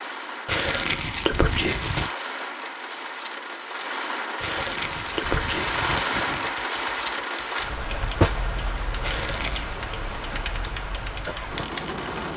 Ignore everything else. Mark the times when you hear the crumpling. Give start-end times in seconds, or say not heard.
0.5-2.1, 4.4-6.5, 9.0-9.8.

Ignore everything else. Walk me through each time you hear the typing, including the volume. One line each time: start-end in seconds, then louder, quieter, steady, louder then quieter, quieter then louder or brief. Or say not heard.
6.4-11.8 steady.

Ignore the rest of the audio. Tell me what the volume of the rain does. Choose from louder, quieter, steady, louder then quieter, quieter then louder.
louder then quieter.